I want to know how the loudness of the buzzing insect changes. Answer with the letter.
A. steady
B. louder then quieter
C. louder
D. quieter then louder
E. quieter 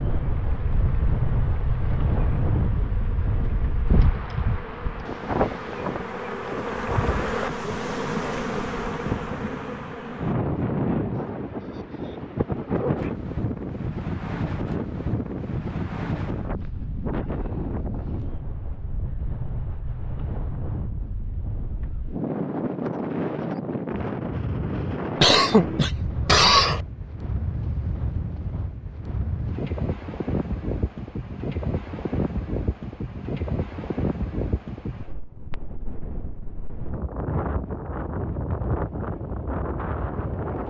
C.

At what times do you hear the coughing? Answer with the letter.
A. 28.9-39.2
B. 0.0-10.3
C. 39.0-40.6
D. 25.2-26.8
D.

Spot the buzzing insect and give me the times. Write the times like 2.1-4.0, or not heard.
0.0-10.3.